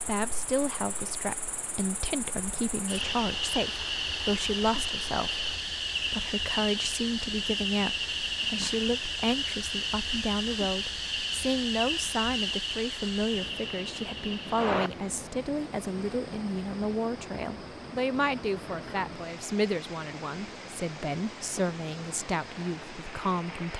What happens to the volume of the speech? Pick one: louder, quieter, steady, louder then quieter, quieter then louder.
steady.